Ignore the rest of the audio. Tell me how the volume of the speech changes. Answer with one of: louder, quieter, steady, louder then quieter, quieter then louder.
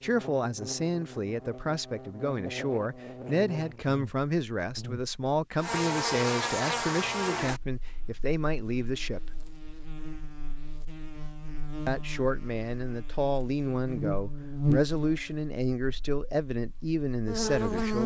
steady.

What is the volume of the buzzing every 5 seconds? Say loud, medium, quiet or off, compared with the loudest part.
medium, loud, loud, loud.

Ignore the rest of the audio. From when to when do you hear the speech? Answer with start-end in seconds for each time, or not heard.
0.0-9.4, 11.8-18.0.